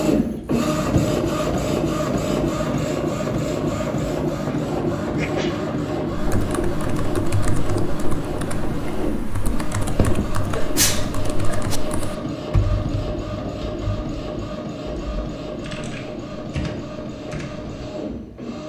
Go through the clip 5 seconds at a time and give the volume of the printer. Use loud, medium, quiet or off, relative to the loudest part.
loud, loud, medium, medium.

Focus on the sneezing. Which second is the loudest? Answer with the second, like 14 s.
11 s.